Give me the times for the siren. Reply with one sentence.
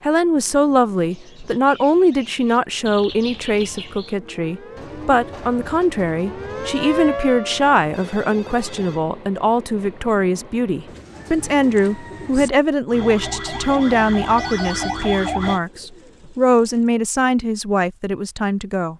You can hear the siren from 4.2 to 9.1 s and from 12.8 to 15.6 s.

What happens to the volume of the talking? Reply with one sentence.
The loudness of the talking stays about the same.